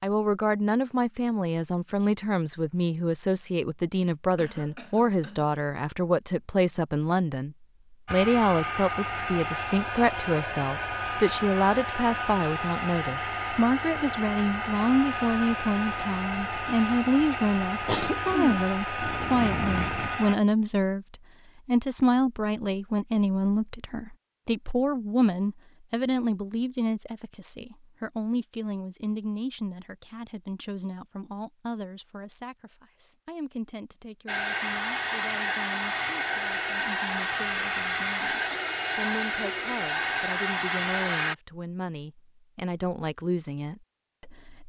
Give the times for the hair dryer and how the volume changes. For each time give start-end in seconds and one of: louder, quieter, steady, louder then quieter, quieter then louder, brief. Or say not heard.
8.1-20.4 steady
34.2-41.4 steady.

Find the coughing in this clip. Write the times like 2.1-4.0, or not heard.
4.3-5.5, 17.9-20.2, 38.3-38.8.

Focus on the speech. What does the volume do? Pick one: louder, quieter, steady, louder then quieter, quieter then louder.
quieter.